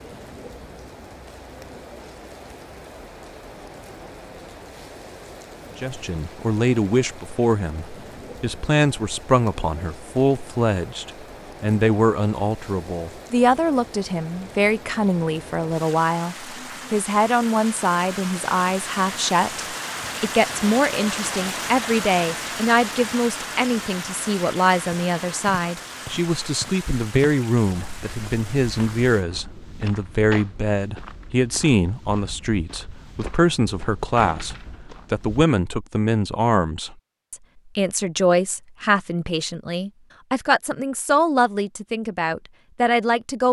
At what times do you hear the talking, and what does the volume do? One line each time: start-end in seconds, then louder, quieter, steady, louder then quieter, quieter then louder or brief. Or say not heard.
5.8-43.4 steady.